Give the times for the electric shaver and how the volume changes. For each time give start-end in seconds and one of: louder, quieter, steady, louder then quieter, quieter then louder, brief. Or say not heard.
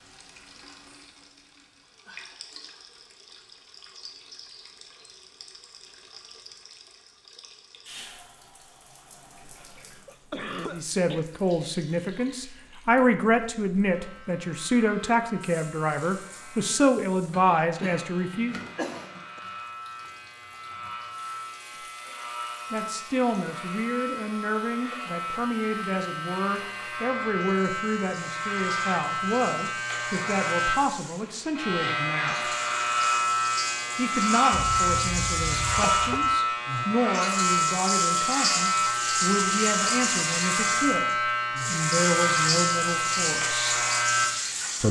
13.8-44.8 louder.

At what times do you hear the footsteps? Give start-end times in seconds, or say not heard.
not heard.